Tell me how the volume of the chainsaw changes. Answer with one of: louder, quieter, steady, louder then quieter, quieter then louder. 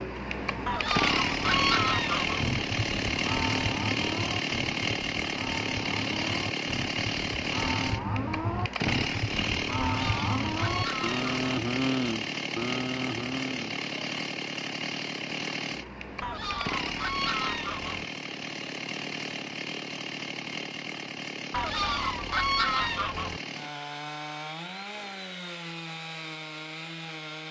quieter.